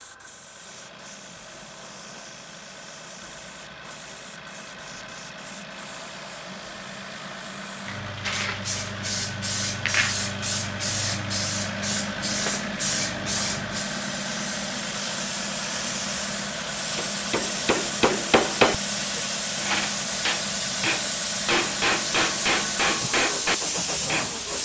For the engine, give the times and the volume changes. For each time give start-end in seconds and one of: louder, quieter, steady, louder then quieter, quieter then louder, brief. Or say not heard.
0.0-24.6 louder.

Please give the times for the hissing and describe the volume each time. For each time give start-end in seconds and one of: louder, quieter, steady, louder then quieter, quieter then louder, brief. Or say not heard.
0.0-24.6 louder.